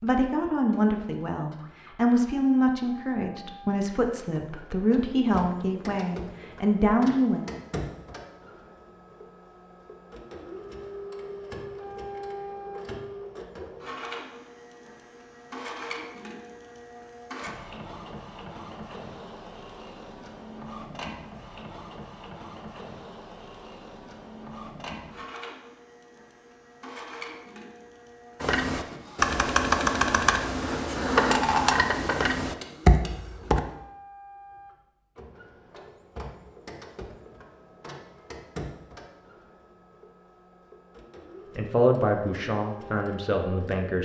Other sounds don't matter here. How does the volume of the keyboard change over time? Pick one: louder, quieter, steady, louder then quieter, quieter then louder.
steady.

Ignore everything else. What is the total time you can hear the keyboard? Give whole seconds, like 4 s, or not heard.
5 s.